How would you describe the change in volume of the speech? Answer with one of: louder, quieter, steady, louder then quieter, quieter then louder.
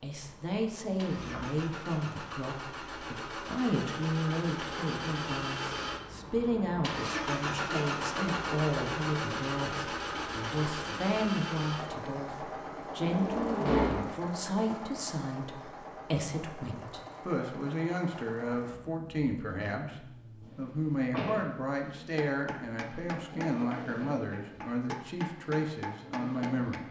steady.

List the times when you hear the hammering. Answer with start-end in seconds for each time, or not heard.
22.1-26.8.